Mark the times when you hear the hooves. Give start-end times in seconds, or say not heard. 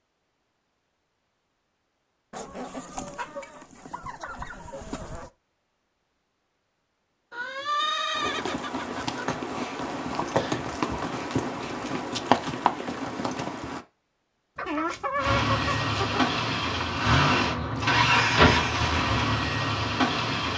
8.2-13.8.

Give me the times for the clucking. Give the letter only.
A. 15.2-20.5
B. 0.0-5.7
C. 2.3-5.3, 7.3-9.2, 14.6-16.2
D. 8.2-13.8
C.